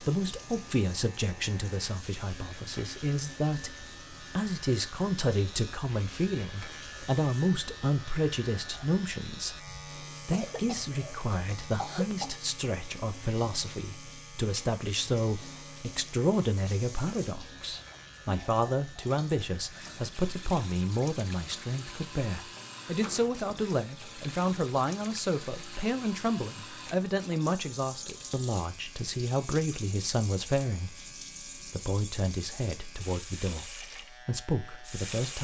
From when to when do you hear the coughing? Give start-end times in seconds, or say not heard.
10.3-12.3, 23.0-23.6.